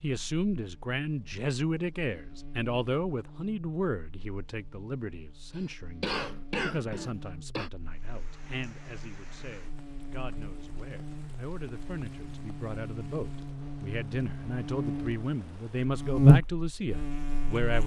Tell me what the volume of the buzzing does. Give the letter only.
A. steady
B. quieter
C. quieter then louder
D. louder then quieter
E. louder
E.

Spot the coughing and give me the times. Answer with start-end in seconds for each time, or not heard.
5.5-7.7.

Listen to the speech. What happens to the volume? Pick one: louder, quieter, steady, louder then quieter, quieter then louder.
quieter then louder.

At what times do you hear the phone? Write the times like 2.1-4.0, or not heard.
not heard.